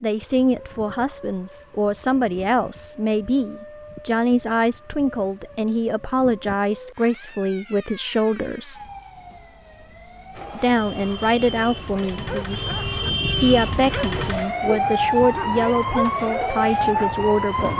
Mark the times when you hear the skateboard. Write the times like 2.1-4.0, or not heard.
not heard.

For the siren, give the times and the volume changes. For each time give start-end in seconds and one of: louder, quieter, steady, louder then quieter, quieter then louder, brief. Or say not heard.
0.0-17.7 louder.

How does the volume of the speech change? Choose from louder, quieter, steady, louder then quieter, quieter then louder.
steady.